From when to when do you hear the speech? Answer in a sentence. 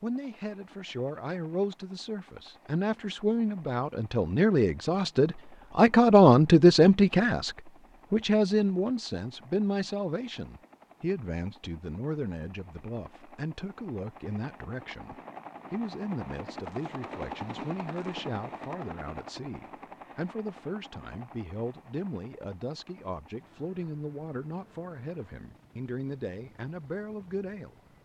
You can hear the speech from 0.0 to 27.8 s.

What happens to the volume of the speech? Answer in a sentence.
The loudness of the speech goes up, then down.